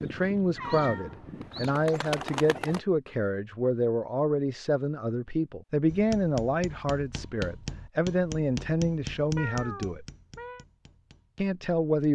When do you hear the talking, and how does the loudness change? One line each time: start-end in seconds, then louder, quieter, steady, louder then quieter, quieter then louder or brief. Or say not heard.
0.0-10.1 steady
11.3-12.1 brief.